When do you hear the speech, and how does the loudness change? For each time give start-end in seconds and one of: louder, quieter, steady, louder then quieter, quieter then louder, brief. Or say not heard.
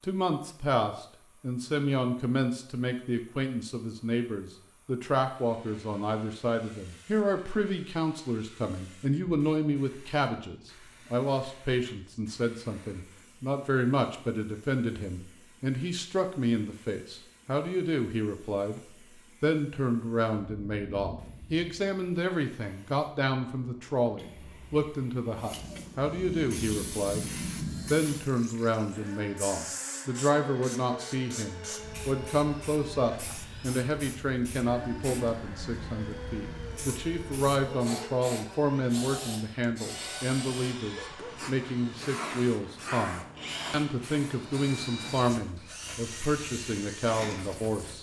0.0-18.8 steady
19.4-27.3 steady
27.9-47.9 steady.